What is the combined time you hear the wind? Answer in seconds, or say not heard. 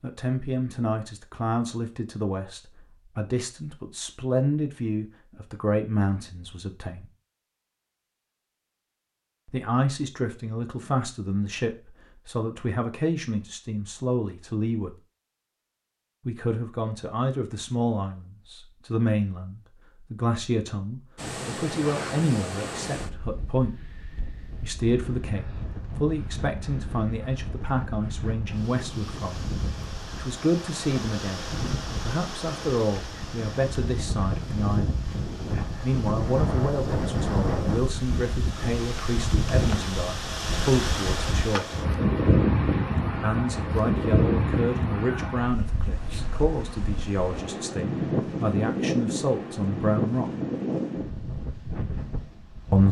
32 s.